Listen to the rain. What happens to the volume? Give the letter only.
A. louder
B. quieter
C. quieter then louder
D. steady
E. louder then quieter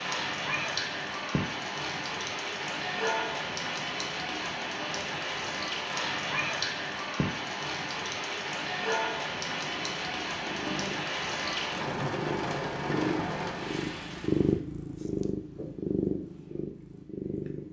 D.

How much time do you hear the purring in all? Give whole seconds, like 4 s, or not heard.
8 s.